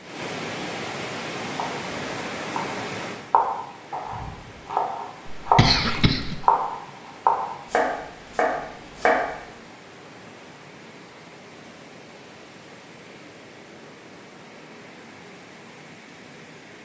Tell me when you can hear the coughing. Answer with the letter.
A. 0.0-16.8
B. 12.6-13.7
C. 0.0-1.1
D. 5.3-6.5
D.